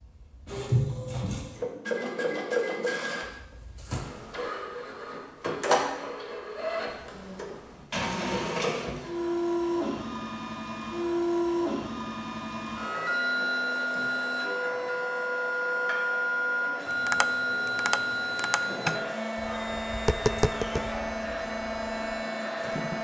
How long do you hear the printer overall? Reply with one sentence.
The printer can be heard for 23 seconds in total.